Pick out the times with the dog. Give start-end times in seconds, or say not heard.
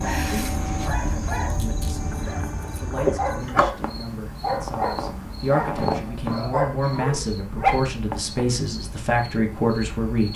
0.0-7.8.